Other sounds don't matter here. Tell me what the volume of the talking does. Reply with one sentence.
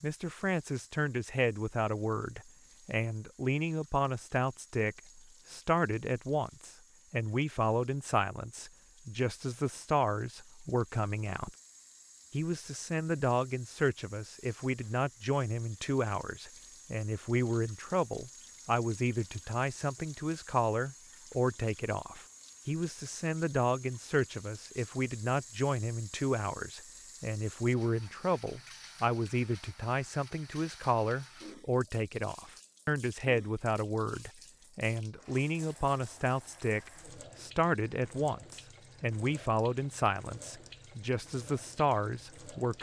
The loudness of the talking stays about the same.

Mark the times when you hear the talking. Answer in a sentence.
You can hear the talking from 0.0 to 11.6 s and from 12.3 to 42.7 s.